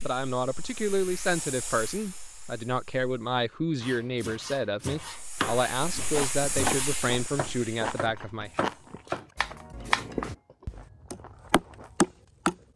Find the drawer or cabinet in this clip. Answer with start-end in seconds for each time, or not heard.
not heard.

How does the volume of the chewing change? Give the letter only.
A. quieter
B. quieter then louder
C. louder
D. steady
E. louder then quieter
A.